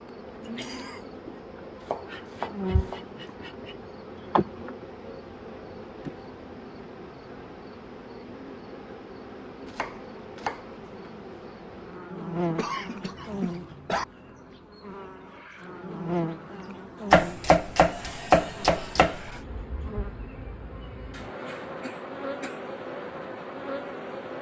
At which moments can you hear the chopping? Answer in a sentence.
You can hear the chopping from 1.9 to 3.0 s, from 9.7 to 11.1 s and from 17.1 to 19.4 s.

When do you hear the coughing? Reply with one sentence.
You can hear the coughing from 0.4 to 1.0 s, from 12.6 to 14.1 s and from 21.1 to 22.6 s.